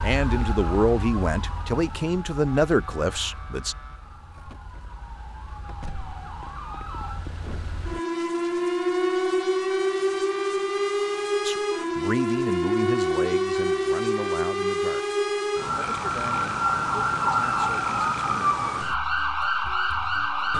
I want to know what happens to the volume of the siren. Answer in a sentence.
The volume of the siren goes up.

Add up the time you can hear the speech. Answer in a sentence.
The speech can be heard for 10 seconds in total.